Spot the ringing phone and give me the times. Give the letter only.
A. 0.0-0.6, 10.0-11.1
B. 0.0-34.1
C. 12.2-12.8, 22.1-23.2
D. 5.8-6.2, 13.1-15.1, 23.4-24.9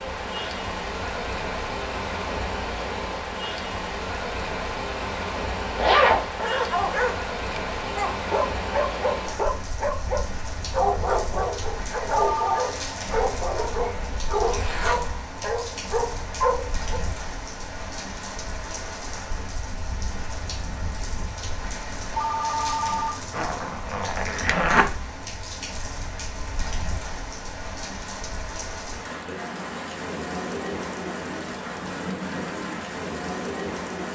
C.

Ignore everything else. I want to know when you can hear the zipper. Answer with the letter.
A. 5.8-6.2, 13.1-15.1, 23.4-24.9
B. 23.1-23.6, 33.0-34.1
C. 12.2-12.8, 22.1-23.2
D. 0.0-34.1
A.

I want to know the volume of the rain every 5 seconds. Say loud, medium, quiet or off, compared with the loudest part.
loud, loud, medium, medium, medium, medium, loud.